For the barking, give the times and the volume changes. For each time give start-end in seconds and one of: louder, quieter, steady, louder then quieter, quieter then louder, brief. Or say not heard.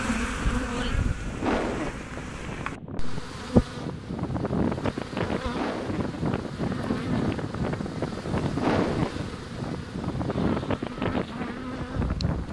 not heard.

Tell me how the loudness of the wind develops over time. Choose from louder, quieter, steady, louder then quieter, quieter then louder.
louder.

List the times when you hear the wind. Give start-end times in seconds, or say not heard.
0.0-12.4.